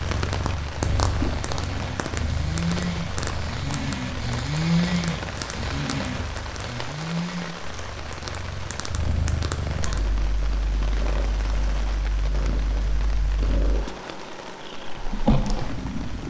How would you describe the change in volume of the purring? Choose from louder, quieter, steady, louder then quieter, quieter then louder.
quieter then louder.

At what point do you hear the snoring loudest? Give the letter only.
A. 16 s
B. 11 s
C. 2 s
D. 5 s
D.